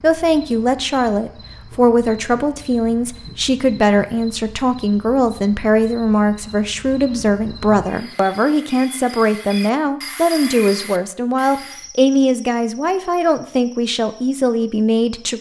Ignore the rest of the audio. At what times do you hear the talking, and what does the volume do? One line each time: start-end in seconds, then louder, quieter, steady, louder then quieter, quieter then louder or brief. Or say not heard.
0.0-15.3 steady.